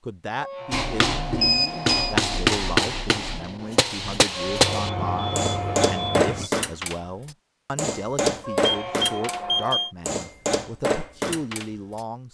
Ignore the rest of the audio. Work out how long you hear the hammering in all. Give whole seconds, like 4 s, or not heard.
11 s.